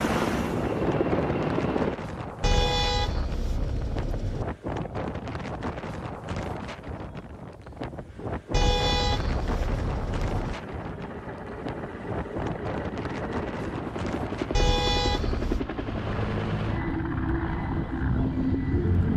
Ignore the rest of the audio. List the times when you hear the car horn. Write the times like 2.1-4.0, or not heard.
2.4-4.5, 8.5-10.6, 14.5-15.6.